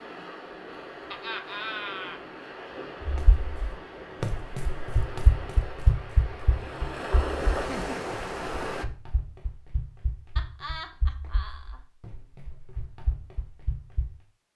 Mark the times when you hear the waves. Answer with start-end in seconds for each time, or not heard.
0.0-8.8.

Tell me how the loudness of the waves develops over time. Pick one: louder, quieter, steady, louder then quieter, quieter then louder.
louder.